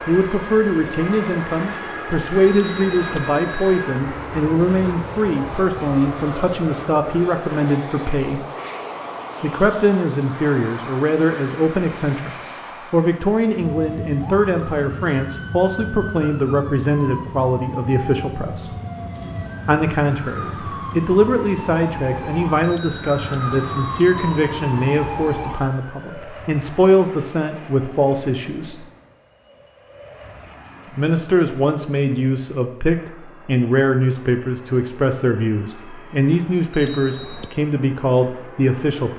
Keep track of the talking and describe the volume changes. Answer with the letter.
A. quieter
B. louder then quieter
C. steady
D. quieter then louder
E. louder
C.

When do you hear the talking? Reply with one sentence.
You can hear the talking from 0.1 to 8.4 s, from 9.4 to 18.8 s, from 19.6 to 28.9 s and from 30.9 to 39.1 s.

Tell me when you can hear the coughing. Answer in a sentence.
You can't hear the coughing here.